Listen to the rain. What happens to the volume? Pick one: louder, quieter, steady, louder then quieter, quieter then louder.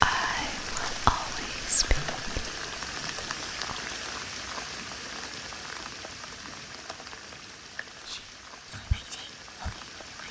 quieter.